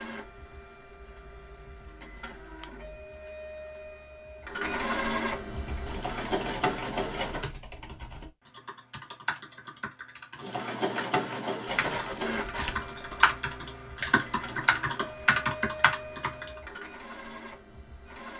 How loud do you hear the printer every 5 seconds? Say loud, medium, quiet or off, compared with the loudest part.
medium, loud, loud, medium.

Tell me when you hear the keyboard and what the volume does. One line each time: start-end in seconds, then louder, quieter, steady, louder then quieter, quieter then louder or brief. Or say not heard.
5.5-16.5 louder.